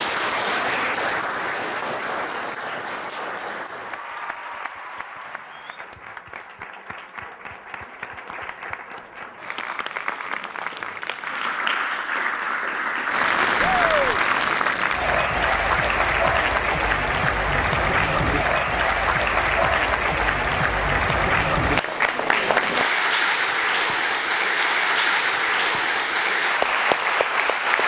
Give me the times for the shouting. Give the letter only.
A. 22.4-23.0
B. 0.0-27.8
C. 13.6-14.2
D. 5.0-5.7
C.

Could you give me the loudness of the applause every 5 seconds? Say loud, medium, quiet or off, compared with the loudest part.
medium, quiet, loud, loud, loud, loud.